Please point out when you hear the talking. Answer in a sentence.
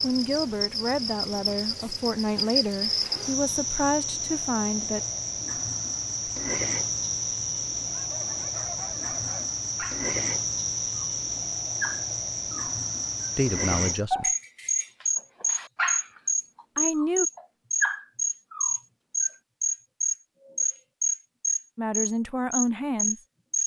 You can hear the talking from 0.0 to 5.0 s, from 13.3 to 14.3 s, from 16.8 to 17.2 s and from 21.8 to 23.2 s.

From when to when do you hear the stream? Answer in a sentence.
The stream can't be heard in this clip.